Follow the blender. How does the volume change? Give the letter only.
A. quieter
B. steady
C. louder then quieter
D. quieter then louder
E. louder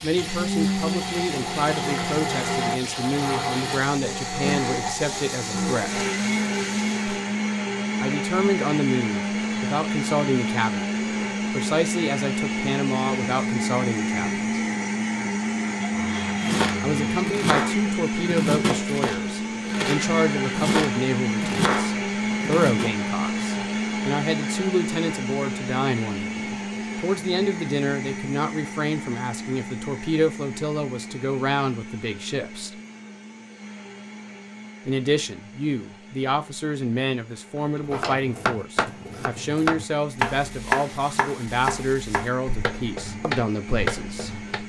A.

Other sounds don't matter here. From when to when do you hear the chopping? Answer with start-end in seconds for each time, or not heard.
16.4-22.9, 37.8-44.6.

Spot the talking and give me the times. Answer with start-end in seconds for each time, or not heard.
0.0-6.0, 8.0-10.9, 11.5-14.4, 16.8-32.8, 34.9-44.6.